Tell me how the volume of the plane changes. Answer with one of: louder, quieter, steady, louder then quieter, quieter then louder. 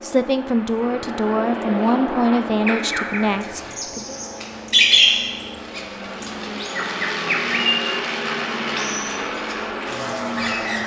quieter then louder.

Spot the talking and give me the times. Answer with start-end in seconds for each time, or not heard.
0.0-4.2.